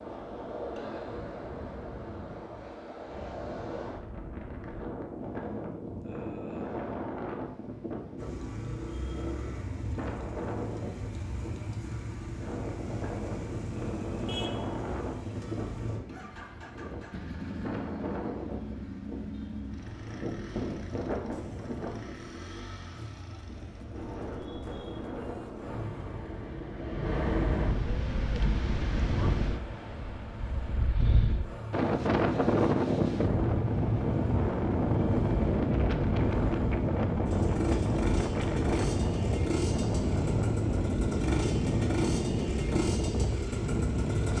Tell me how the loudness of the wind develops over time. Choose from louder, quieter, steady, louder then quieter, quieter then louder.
louder.